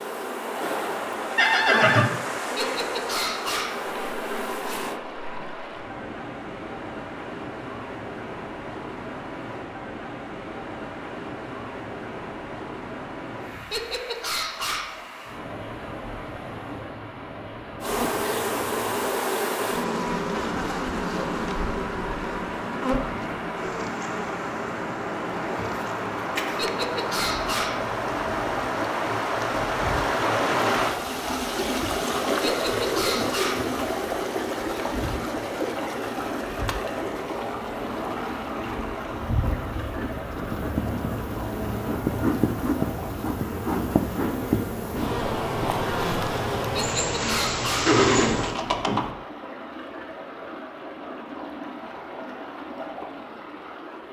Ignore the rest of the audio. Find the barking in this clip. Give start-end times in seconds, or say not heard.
2.5-3.9, 13.7-15.0, 26.6-27.9, 32.5-33.8, 46.8-48.0.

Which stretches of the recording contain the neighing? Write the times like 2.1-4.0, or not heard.
1.4-2.1, 25.5-26.8, 47.9-49.1.